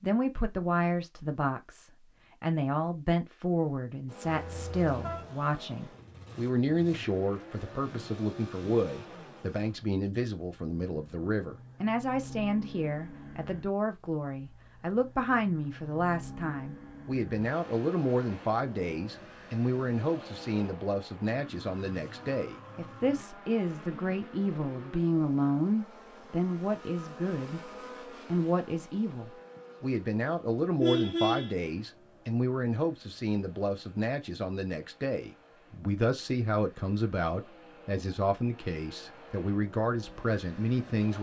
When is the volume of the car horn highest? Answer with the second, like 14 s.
31 s.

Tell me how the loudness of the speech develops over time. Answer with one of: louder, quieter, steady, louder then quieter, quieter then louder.
steady.